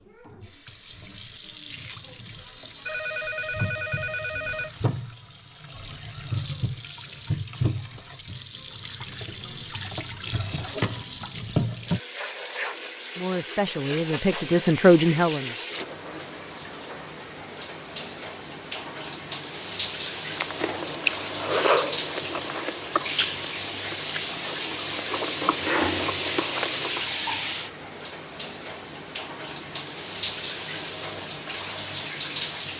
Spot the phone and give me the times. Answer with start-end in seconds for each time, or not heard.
2.9-4.7.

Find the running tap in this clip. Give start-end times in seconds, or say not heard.
0.0-32.7.